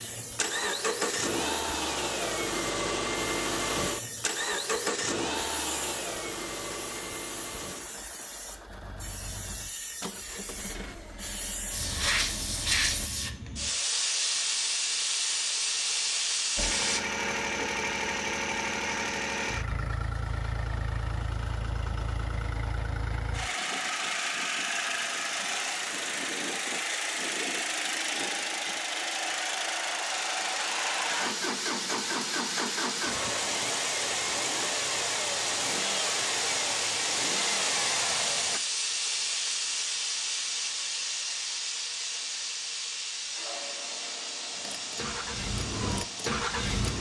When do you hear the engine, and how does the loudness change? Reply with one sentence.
You can hear the engine from 0.0 to 13.1 s, getting quieter; from 16.6 to 38.6 s, at a steady volume; and briefly from 44.5 to 46.9 s.